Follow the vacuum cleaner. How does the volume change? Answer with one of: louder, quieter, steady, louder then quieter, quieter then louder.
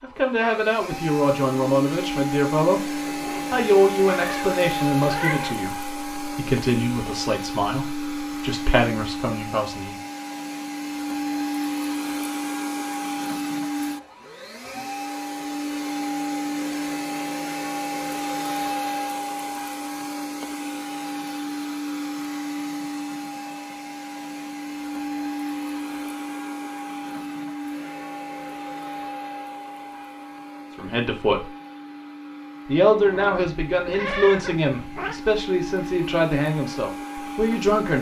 quieter.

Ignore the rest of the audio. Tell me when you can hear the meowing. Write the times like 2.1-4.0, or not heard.
3.0-5.5, 33.0-35.2.